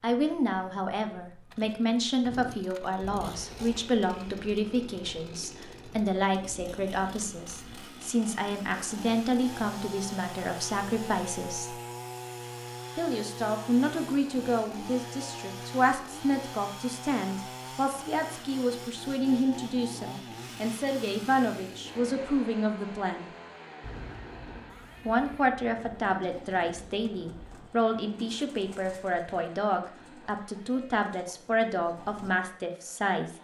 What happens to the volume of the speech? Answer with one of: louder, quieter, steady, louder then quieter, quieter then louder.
steady.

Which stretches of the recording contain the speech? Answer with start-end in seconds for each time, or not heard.
0.0-11.8, 12.9-23.3, 25.1-33.3.